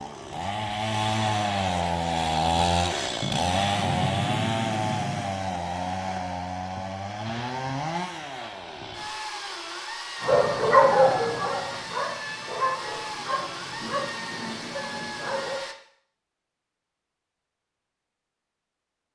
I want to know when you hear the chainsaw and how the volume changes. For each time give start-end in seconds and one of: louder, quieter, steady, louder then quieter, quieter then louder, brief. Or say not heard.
0.0-15.8 quieter.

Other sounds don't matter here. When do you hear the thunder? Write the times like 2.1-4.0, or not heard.
3.2-5.2.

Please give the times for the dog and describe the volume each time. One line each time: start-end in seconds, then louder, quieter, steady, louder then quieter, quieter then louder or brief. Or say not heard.
10.2-15.7 quieter.